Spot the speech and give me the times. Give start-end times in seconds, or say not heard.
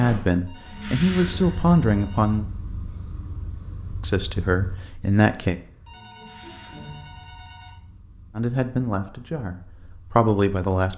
0.0-2.5, 4.0-5.6, 8.3-10.9.